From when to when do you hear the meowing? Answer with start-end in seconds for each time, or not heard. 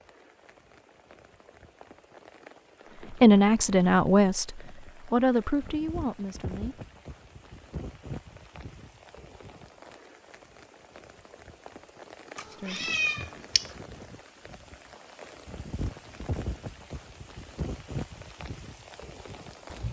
12.3-13.7.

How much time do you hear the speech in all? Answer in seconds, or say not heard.
4 s.